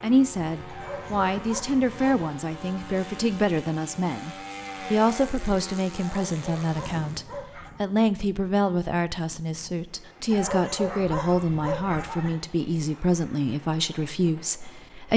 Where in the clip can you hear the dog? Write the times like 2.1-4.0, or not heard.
0.7-2.2, 6.0-7.8, 10.3-12.3.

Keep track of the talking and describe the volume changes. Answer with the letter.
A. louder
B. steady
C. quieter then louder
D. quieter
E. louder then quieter
B.